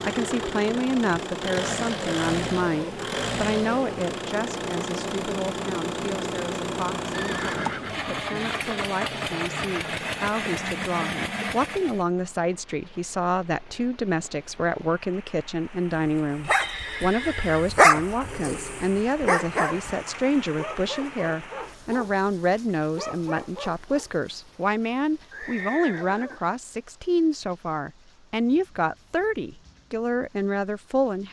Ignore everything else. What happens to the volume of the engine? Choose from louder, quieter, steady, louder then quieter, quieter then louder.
steady.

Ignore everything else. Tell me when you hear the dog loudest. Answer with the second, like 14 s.
18 s.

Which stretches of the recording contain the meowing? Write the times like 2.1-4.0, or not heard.
not heard.